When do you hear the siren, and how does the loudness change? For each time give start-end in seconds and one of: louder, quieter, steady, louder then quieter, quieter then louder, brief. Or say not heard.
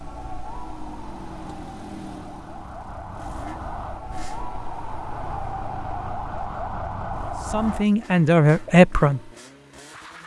0.0-7.8 louder.